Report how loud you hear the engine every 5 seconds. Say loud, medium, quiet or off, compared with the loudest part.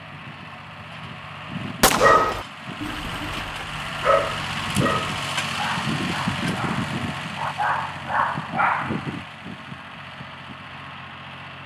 loud, loud, medium.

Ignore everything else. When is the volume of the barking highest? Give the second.
2 s.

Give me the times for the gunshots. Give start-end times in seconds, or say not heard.
1.8-2.5.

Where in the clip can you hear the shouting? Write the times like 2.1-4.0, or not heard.
not heard.